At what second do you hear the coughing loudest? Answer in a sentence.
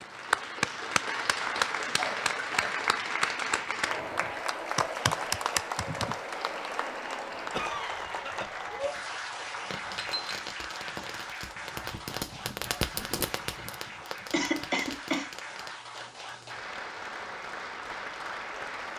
The loudest moment of the coughing is at 15 seconds.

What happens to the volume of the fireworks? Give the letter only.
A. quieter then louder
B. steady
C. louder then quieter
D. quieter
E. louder
C.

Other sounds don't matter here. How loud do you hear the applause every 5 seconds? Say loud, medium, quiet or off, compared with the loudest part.
loud, loud, medium, medium.